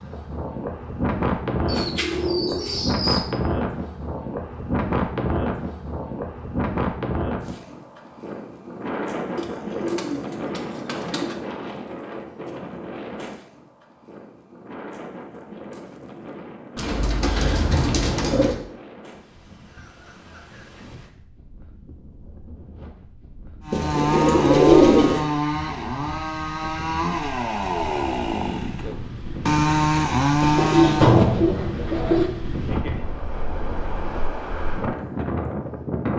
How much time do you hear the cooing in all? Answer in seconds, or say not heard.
9 s.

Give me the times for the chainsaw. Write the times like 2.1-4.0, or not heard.
23.6-31.3.